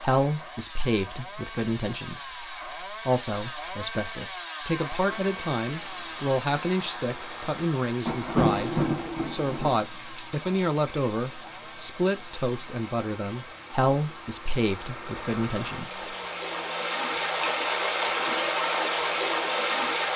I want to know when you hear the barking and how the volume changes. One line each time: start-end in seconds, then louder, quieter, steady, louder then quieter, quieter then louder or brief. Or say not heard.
not heard.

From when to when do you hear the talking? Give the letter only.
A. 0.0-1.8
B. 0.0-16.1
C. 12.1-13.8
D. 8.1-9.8
B.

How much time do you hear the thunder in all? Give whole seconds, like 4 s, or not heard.
2 s.